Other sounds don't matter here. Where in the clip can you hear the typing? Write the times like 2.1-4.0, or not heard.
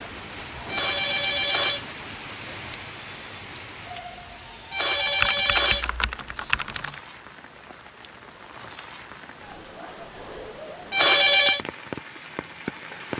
5.0-7.0.